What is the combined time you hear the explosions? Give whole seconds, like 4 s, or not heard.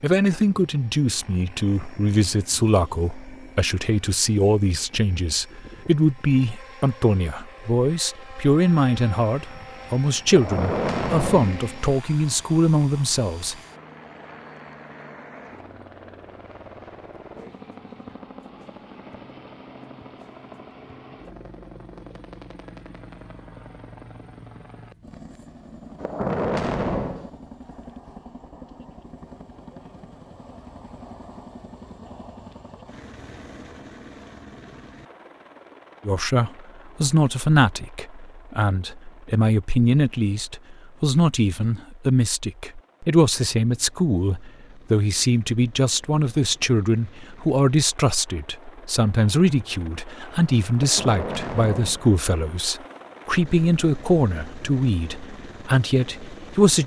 4 s.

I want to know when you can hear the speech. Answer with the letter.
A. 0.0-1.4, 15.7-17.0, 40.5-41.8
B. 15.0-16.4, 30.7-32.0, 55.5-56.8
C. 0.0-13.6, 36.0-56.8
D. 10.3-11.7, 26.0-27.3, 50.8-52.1
C.